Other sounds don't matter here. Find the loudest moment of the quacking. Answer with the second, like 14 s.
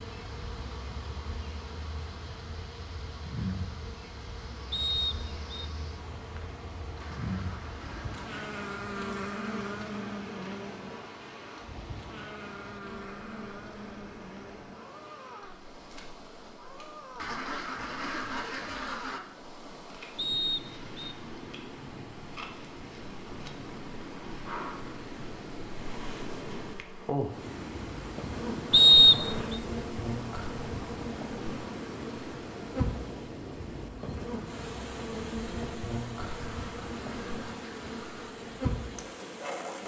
18 s.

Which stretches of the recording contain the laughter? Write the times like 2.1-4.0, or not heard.
not heard.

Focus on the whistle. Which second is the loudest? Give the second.
29 s.